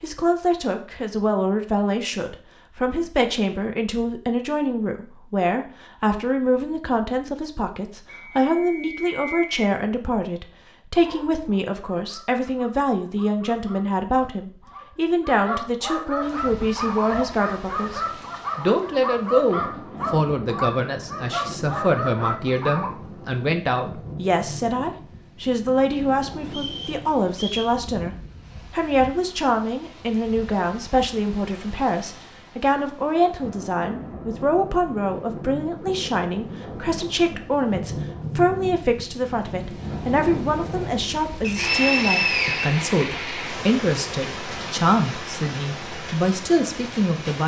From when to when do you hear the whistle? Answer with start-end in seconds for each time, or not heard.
8.1-9.6, 26.5-27.8, 41.4-42.7.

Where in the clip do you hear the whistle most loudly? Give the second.
42 s.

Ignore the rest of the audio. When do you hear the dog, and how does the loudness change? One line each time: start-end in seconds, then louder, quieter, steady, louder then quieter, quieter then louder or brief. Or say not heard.
10.9-22.9 louder.